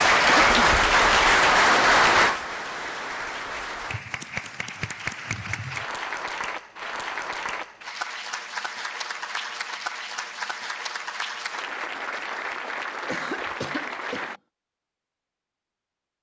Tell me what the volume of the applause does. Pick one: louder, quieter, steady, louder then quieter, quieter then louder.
quieter.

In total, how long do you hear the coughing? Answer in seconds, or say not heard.
2 s.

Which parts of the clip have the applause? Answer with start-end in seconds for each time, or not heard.
0.0-14.4.